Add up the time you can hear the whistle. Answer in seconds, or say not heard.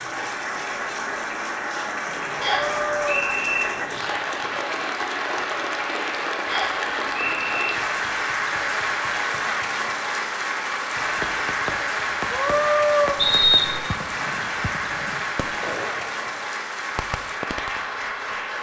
3 s.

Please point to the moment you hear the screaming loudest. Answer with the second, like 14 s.
13 s.